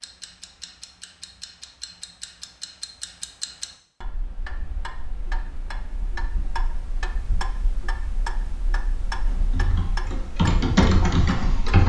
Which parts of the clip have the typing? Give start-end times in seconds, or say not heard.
9.2-11.8.